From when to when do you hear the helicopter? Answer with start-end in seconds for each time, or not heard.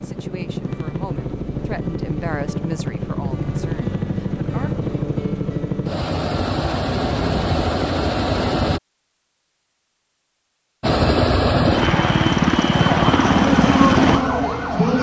0.0-8.8, 10.8-14.7.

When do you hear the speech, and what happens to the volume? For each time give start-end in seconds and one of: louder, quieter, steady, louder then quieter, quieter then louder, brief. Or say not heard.
0.0-4.8 louder then quieter.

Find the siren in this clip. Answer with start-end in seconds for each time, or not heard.
12.8-14.9.